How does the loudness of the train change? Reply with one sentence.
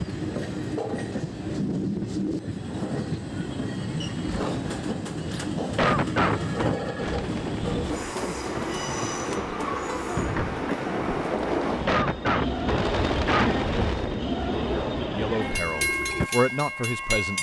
The loudness of the train stays about the same.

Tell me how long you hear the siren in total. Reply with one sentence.
The siren can't be heard in this clip.